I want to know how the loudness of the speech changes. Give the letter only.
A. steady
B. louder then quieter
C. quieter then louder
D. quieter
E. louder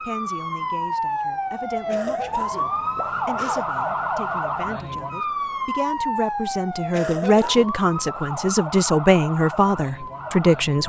E.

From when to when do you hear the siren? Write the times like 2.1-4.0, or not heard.
0.0-10.8.